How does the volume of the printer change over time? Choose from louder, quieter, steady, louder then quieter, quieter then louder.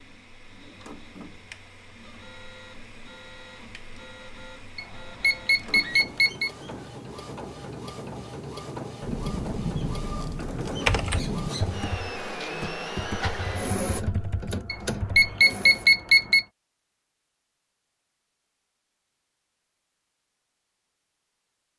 louder.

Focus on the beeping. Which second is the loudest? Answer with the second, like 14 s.
16 s.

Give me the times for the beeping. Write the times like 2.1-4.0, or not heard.
4.8-6.5, 14.7-16.4.